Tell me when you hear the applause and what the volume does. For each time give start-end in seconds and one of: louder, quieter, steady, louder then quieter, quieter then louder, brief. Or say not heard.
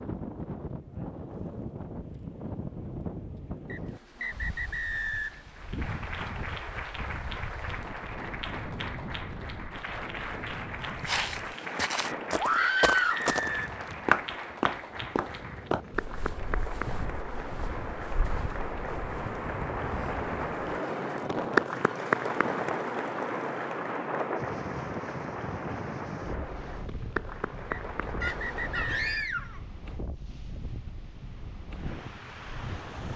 5.5-29.2 louder then quieter.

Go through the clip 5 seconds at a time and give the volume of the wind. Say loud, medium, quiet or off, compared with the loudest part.
loud, medium, medium, medium, loud, medium, medium.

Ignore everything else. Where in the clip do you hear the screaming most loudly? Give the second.
13 s.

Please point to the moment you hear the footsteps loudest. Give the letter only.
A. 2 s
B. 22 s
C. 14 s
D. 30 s
C.